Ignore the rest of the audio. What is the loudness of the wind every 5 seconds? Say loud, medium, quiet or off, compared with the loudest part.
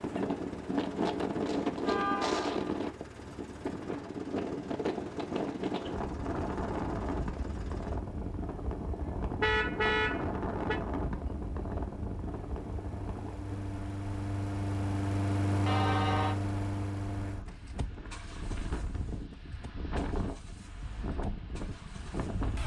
loud, loud, medium, medium, medium.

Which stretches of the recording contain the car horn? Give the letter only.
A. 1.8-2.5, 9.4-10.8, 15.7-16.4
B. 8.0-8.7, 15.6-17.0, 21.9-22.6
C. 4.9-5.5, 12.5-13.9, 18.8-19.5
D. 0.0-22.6
A.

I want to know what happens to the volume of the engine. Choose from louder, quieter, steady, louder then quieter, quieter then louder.
louder then quieter.